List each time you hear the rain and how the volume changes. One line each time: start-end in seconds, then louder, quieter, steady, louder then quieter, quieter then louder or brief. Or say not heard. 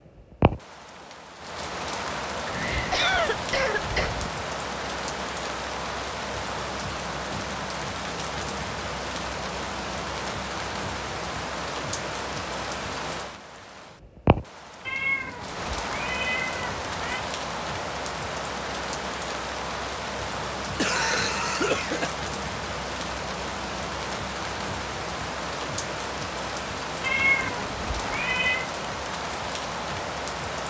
0.0-30.6 steady.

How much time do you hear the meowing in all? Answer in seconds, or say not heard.
6 s.